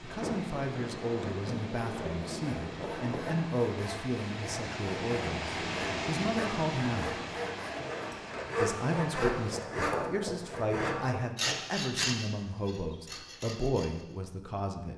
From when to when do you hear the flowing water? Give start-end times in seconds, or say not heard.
0.0-9.7.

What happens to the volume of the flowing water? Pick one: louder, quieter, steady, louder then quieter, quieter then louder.
louder then quieter.